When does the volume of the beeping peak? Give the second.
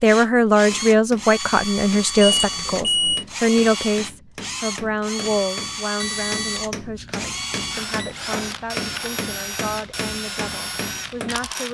3 s.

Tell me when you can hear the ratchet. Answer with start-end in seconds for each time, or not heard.
not heard.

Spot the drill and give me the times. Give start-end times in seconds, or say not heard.
0.0-11.6.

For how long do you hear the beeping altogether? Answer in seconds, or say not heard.
3 s.